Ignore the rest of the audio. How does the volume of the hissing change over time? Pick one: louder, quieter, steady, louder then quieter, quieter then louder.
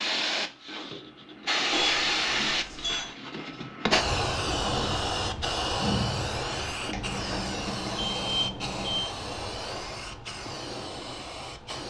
quieter.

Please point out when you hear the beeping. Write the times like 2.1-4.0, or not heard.
1.7-3.1, 6.9-9.1.